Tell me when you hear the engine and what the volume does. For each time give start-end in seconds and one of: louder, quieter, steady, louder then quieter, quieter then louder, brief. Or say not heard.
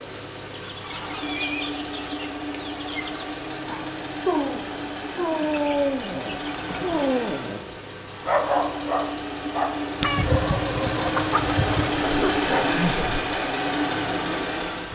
0.0-14.8 louder.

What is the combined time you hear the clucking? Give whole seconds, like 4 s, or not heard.
6 s.